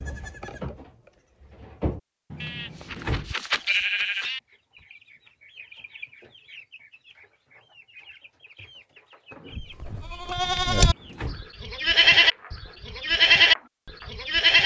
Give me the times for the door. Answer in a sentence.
You can hear the door from 2.3 to 3.4 s and from 10.4 to 11.4 s.